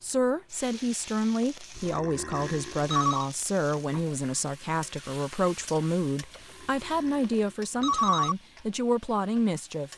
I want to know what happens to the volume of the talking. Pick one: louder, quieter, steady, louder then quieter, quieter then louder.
steady.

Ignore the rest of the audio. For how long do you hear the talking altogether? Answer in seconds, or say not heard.
10 s.